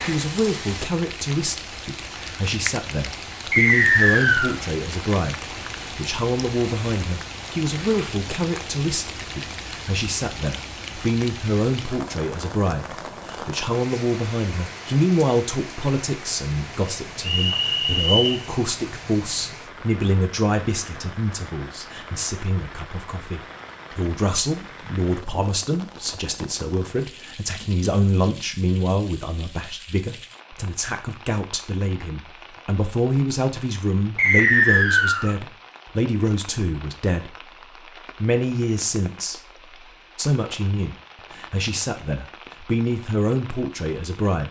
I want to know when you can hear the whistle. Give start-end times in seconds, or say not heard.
3.5-4.5, 17.2-18.4, 34.1-35.3.